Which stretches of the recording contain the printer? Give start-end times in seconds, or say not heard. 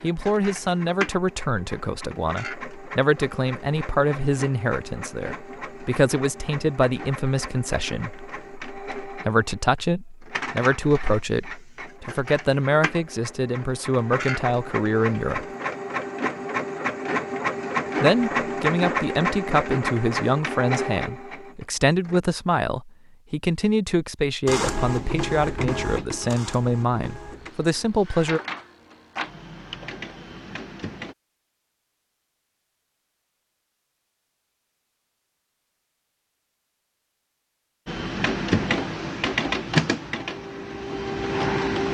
0.0-22.2, 24.4-31.1, 37.9-41.9.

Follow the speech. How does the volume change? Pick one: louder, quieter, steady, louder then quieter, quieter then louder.
steady.